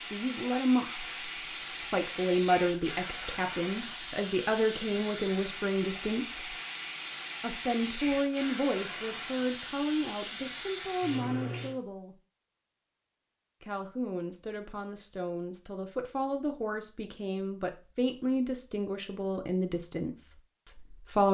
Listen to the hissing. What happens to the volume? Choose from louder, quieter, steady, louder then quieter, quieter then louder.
steady.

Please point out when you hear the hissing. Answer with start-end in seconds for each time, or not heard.
0.0-11.8.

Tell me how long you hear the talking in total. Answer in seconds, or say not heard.
19 s.